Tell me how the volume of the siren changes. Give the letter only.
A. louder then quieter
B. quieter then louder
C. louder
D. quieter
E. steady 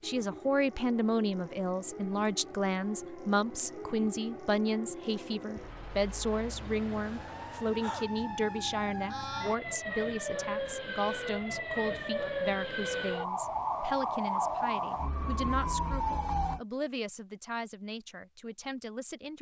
C.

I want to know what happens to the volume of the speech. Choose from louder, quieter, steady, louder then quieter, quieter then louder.
quieter.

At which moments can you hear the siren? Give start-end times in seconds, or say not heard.
0.0-16.6.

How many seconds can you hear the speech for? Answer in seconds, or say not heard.
19 s.